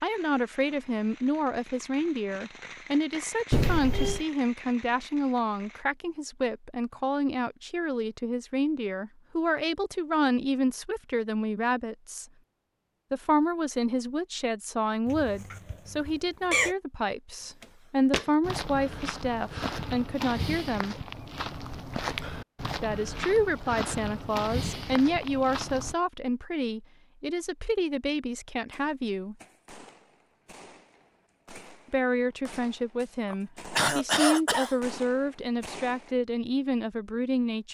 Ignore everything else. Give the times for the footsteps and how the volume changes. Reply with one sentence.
You can hear the footsteps from 17.6 to 25.9 s, at a steady volume.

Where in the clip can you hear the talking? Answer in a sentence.
The talking can be heard from 0.0 to 12.2 s, from 13.1 to 20.9 s, from 22.8 to 29.4 s and from 31.9 to 37.6 s.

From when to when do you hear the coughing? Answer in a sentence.
You can hear the coughing from 3.5 to 4.2 s, from 15.1 to 16.8 s and from 33.3 to 34.8 s.